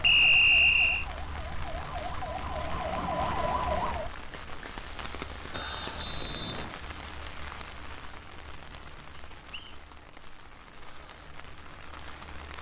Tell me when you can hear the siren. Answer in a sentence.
The siren can be heard from 0.0 to 4.1 s.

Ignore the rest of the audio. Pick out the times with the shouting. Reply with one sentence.
The shouting can't be heard in this clip.